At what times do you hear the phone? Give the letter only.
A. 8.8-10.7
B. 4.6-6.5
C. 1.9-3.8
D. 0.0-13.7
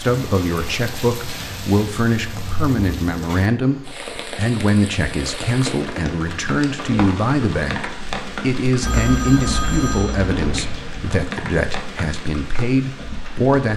A.